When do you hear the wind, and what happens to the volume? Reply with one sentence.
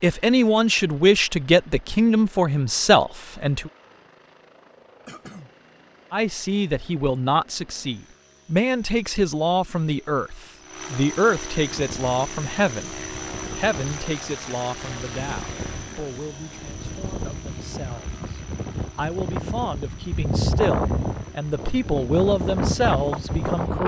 The wind can be heard from 11.7 to 23.8 s, getting louder.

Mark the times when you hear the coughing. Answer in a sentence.
The coughing can be heard from 5.0 to 5.5 s.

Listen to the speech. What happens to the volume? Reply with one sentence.
The loudness of the speech goes down, then up.